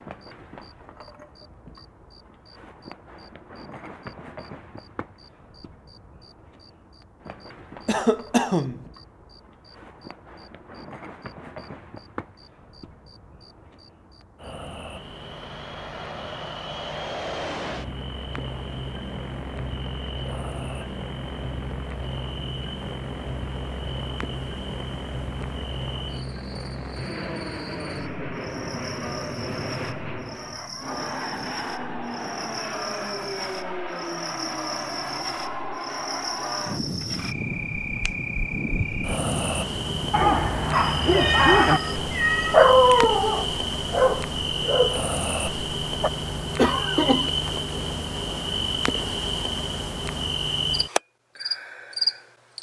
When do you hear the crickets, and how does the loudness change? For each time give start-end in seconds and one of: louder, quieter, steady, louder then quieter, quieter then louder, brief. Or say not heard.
0.0-52.5 louder.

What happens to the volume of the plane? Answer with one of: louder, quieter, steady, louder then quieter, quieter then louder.
steady.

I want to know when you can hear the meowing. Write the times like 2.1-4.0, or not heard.
40.7-43.1.